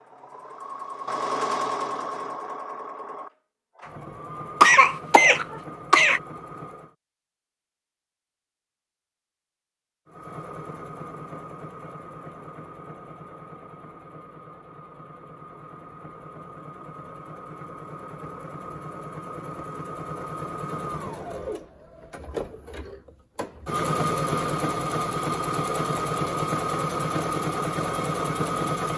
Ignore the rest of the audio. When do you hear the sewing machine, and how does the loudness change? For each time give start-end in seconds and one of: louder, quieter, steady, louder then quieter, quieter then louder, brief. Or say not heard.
0.0-7.0 quieter
10.1-28.9 louder.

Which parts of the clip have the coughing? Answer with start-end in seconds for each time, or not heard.
4.6-6.2.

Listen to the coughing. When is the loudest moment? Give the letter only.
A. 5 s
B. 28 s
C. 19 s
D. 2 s
A.